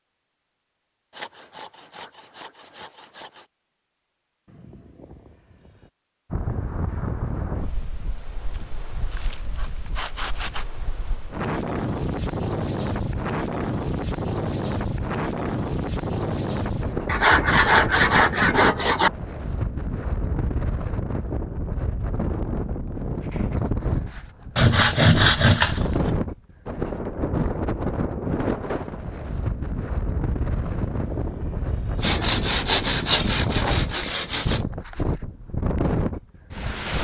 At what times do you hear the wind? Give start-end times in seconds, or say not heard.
6.3-36.9.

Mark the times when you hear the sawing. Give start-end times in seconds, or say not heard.
1.1-3.5, 8.5-10.7, 17.1-19.1, 24.6-25.9, 32.0-34.6.